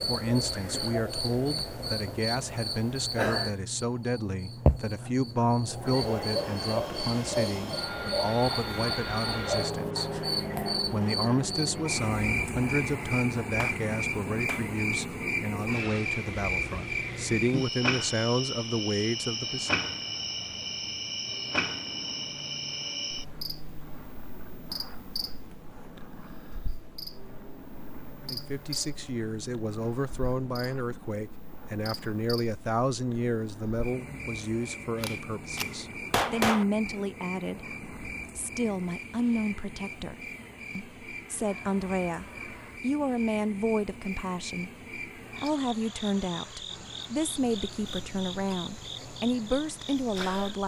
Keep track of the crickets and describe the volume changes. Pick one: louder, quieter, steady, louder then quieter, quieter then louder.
quieter.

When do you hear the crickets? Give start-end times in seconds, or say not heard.
0.0-50.6.